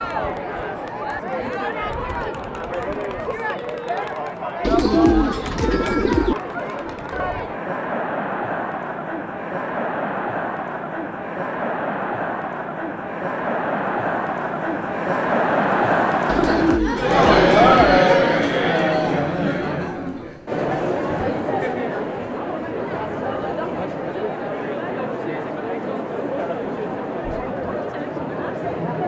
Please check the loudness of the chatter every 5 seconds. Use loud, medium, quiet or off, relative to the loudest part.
medium, medium, medium, loud, medium, medium.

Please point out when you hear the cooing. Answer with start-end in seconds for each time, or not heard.
4.6-6.3, 16.2-18.0.